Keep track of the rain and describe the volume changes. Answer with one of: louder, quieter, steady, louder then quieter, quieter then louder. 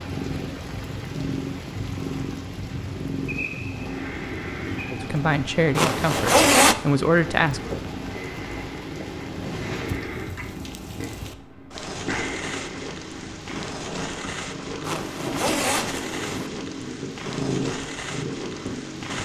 steady.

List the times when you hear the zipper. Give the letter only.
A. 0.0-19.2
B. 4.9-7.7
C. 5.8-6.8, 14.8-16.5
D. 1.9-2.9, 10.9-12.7
C.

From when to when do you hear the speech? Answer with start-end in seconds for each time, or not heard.
4.9-7.7.